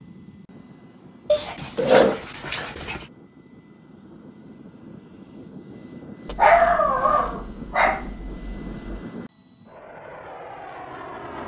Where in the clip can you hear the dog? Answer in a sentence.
You can hear the dog from 1.3 to 3.0 s and from 6.2 to 8.8 s.